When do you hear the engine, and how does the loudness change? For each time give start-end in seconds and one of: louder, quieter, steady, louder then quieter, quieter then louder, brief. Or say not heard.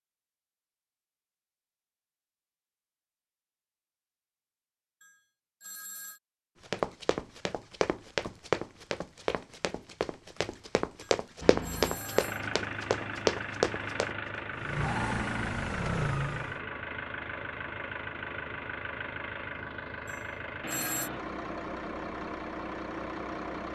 11.4-23.7 steady.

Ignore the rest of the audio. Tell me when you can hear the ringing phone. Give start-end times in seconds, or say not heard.
5.0-6.2, 11.0-12.4, 20.1-21.1.